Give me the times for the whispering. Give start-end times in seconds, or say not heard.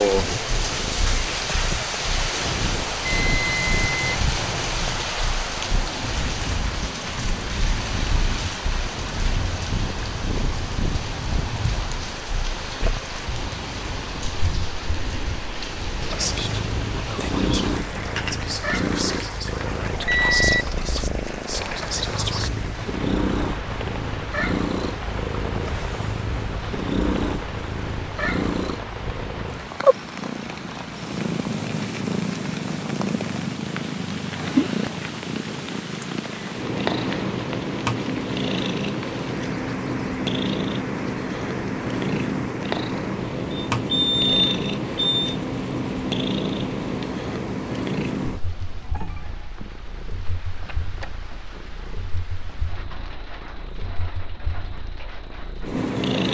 16.0-22.5.